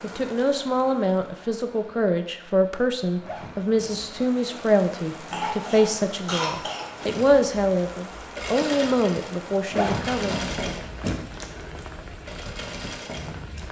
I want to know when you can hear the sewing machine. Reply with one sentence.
The sewing machine can be heard from 7.0 to 13.6 s.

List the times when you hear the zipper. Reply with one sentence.
You can hear the zipper from 3.2 to 4.2 s and from 9.7 to 11.2 s.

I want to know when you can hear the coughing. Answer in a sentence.
You can hear the coughing from 5.2 to 6.9 s.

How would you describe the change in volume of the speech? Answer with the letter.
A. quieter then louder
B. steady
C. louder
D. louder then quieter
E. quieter
B.